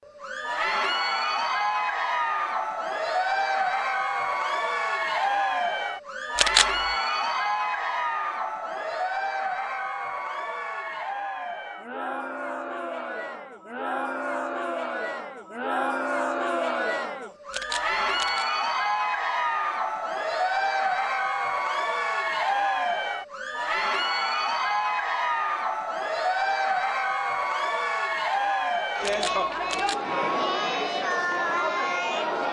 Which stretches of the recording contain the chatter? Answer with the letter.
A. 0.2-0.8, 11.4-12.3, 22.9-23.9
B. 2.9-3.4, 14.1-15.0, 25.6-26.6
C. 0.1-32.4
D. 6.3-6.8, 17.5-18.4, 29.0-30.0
C.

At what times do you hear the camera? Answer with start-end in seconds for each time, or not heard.
6.3-6.8, 17.5-18.4, 29.0-30.0.